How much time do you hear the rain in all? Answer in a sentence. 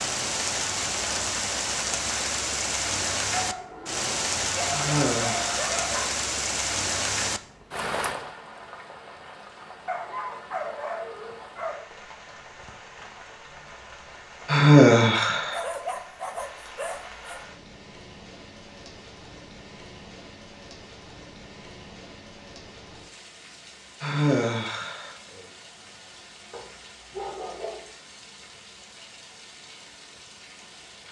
You can hear the rain for 31 seconds altogether.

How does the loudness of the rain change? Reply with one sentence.
The volume of the rain goes down.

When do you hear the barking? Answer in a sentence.
You can hear the barking from 3.3 to 6.1 s, from 9.8 to 11.8 s, from 15.5 to 17.4 s and from 26.5 to 27.9 s.